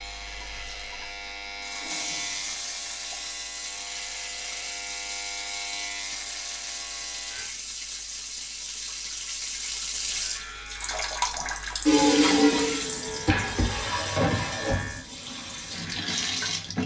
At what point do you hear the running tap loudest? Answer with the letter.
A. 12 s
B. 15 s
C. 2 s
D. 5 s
A.